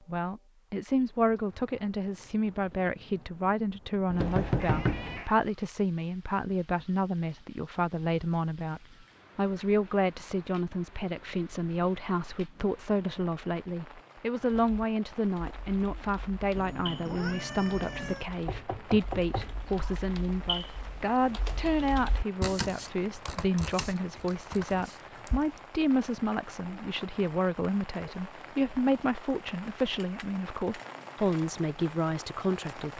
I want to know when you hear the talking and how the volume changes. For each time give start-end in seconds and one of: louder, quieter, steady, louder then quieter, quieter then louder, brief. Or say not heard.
0.1-32.9 steady.